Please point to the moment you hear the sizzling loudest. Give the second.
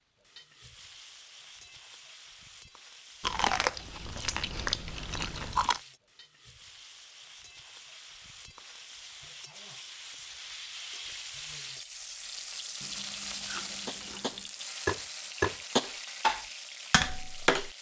13 s.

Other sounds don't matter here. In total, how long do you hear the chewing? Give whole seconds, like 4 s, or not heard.
4 s.